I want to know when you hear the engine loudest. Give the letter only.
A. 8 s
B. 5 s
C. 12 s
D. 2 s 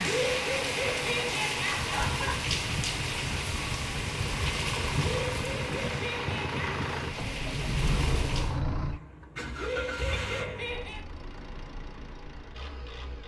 A.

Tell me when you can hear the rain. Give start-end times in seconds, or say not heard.
0.0-8.6.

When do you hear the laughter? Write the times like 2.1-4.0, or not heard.
0.0-2.5, 5.0-6.8, 9.6-11.1.